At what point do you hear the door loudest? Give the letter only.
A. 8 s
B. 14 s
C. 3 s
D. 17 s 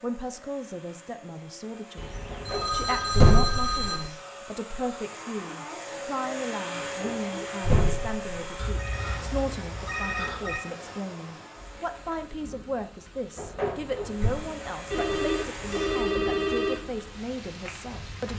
C.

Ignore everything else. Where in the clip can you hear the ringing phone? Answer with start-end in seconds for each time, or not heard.
1.9-4.0, 8.6-10.6, 14.8-16.8.